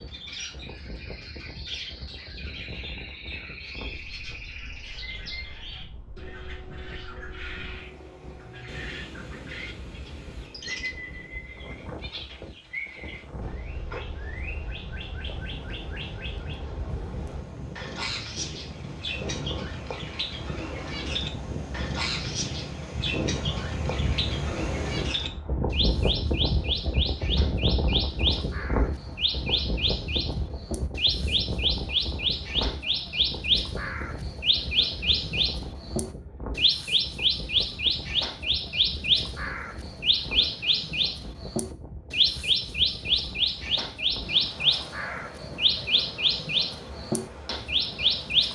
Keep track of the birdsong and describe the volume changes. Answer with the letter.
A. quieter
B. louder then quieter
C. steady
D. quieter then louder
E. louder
E.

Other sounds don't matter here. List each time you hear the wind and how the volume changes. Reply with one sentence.
The wind can be heard from 0.0 to 48.5 s, getting louder then quieter.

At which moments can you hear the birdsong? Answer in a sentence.
You can hear the birdsong from 0.0 to 48.5 s.